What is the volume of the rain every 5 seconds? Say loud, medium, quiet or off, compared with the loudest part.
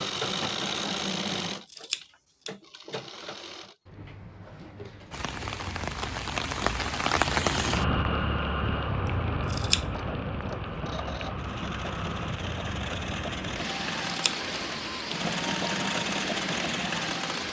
off, loud, medium, medium.